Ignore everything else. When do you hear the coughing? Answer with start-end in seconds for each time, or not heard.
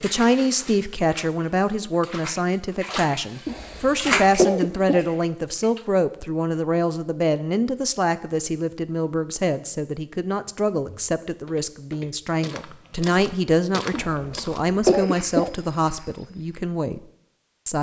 3.5-5.0, 13.9-15.5.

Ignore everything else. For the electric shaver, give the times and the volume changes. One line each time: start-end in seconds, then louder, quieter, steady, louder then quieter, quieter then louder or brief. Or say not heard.
not heard.